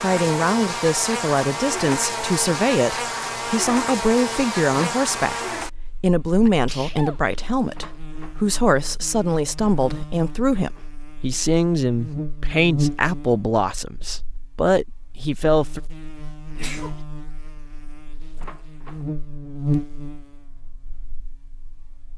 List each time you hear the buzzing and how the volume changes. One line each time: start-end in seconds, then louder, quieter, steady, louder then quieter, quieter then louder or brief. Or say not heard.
0.0-22.1 quieter then louder.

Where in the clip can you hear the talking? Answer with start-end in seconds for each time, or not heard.
0.0-15.8.